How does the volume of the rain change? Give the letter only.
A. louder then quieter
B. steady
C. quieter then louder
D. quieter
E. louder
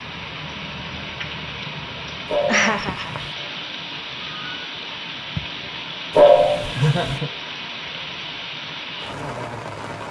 B.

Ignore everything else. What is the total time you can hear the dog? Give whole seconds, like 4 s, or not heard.
2 s.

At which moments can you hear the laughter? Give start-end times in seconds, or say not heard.
2.5-3.2, 6.7-7.3.